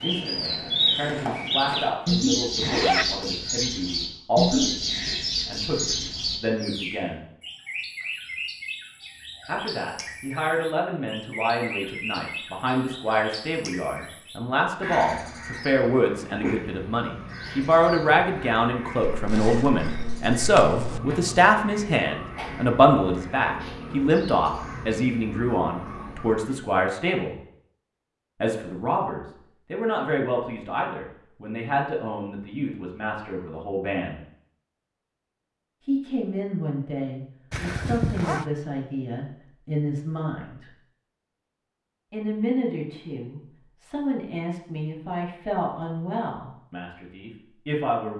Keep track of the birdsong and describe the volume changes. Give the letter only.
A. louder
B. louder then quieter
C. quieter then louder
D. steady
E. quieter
E.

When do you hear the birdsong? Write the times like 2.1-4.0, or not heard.
0.0-26.6.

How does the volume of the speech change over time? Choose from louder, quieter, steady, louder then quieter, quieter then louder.
louder then quieter.